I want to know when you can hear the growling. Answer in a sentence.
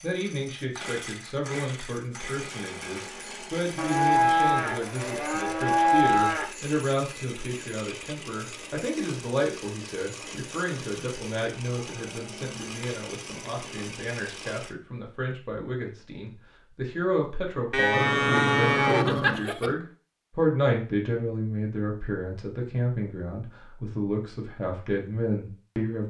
You can hear the growling from 17.9 to 19.4 s.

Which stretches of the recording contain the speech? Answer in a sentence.
You can hear the speech from 0.0 to 26.0 s.